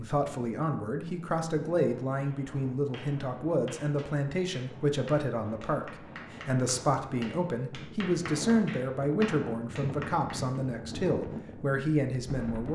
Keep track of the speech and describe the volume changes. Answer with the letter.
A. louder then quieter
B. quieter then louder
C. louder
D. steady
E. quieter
D.